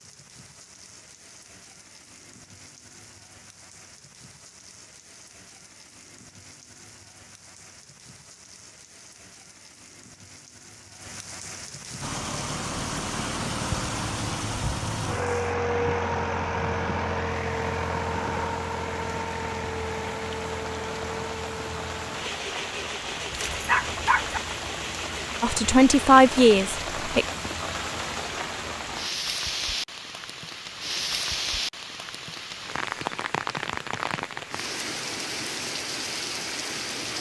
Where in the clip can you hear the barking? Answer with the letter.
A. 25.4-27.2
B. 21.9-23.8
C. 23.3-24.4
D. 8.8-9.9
C.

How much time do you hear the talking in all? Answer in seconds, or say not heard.
2 s.